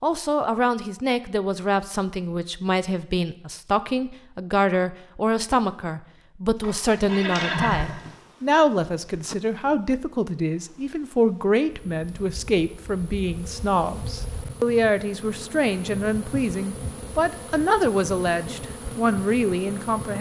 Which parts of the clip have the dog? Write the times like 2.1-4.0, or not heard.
not heard.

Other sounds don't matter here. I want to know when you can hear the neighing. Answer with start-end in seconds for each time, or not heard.
6.6-8.1.